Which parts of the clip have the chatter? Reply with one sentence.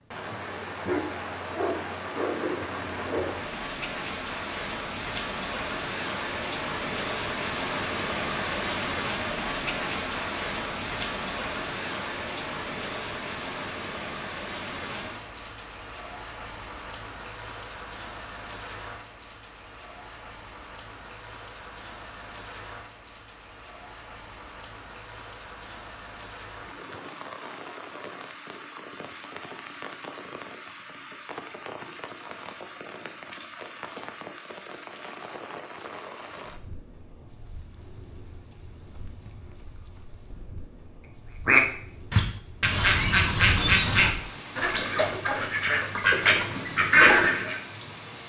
You can't hear the chatter here.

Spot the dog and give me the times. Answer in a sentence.
The dog can be heard from 0.8 to 3.4 s.